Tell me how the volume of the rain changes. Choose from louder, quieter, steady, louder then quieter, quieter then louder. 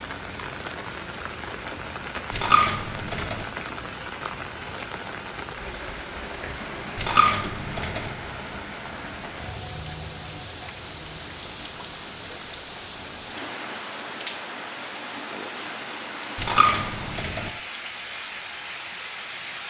steady.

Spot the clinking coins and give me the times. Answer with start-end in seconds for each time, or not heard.
2.3-3.5, 7.0-8.1, 16.4-17.5.